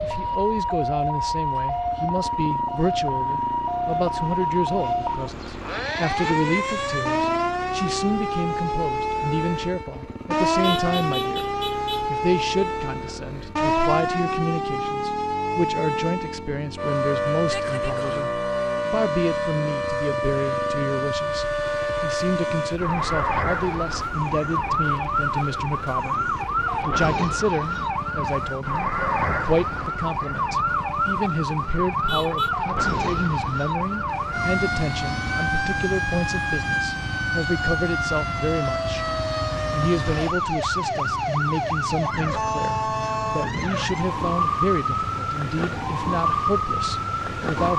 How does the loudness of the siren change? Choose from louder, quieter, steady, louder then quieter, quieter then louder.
steady.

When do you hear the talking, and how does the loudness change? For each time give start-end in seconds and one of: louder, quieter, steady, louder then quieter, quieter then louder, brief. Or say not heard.
0.0-11.4 steady
12.1-47.7 steady.